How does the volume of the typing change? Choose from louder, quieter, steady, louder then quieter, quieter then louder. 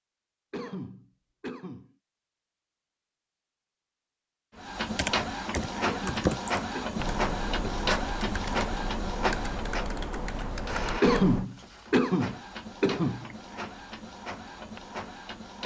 quieter.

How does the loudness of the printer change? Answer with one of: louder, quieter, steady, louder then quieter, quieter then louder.
quieter.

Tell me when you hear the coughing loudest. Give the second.
11 s.